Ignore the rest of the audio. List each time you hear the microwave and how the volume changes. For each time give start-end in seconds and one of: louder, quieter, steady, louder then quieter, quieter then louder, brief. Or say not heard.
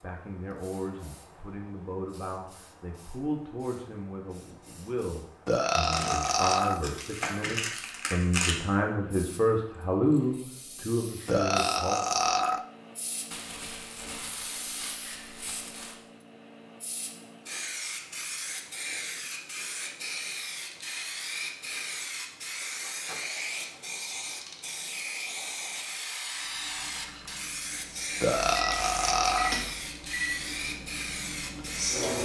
26.2-32.1 louder then quieter.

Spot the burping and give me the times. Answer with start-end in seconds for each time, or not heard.
5.5-6.8, 11.2-12.7, 28.2-29.6.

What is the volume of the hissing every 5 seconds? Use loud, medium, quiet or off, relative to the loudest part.
quiet, quiet, medium, loud, loud, loud, loud.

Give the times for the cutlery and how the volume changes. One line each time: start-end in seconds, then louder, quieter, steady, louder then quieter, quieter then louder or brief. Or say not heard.
not heard.